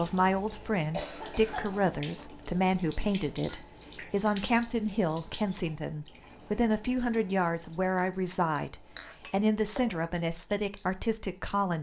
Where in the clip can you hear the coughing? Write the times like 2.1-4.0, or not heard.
0.8-1.9.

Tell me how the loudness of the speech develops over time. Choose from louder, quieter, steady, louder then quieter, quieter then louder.
steady.